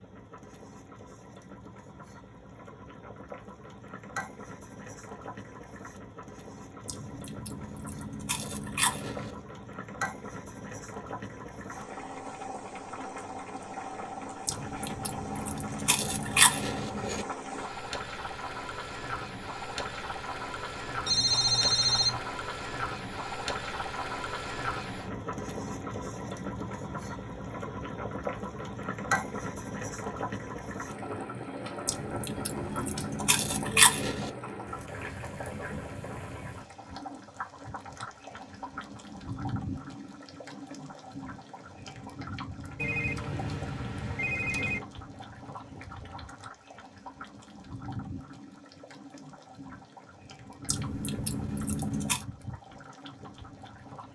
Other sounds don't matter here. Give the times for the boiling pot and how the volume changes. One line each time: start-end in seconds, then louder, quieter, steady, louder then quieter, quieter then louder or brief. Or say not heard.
0.0-54.1 louder then quieter.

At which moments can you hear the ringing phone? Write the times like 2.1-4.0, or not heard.
21.1-22.2, 42.8-44.8.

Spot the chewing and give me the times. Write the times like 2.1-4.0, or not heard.
6.8-9.4, 14.4-17.2, 31.9-34.3, 50.6-52.2.